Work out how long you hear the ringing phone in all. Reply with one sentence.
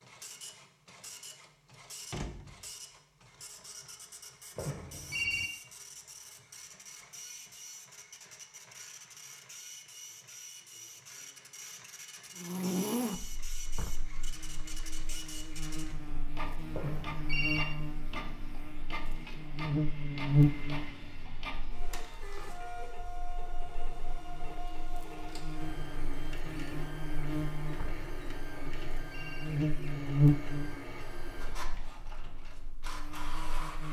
The ringing phone can be heard for 3 seconds in total.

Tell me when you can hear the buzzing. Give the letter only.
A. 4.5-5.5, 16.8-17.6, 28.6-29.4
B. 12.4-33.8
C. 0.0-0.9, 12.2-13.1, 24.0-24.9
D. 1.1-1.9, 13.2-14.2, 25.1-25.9
B.